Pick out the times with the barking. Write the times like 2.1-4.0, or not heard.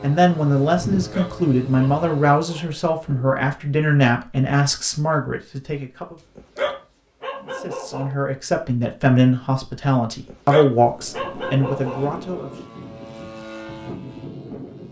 1.1-2.7, 6.3-8.2, 10.2-12.1.